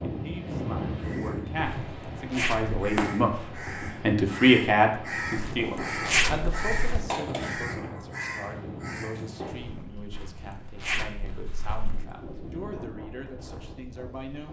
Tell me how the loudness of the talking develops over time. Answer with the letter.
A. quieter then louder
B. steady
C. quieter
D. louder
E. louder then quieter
E.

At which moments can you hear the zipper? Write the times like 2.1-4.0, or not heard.
1.6-2.8, 5.3-7.0, 10.1-12.1.